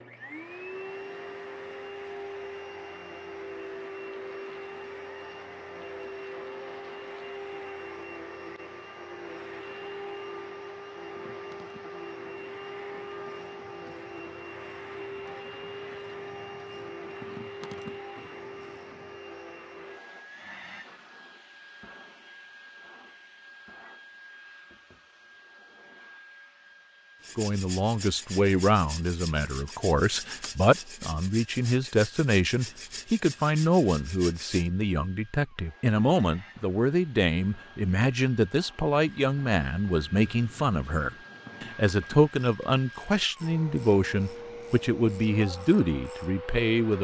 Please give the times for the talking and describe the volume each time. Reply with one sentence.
The talking can be heard from 27.4 to 46.9 s, at a steady volume.